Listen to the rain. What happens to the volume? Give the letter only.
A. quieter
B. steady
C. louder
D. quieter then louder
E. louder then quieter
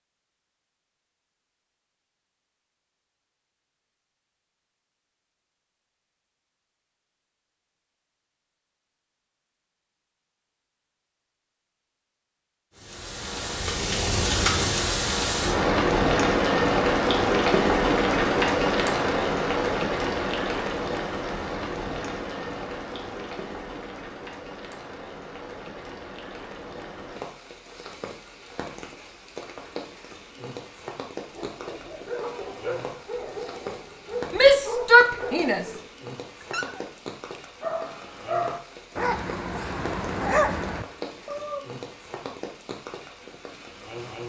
A.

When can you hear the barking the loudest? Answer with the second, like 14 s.
40 s.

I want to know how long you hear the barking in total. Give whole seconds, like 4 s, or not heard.
10 s.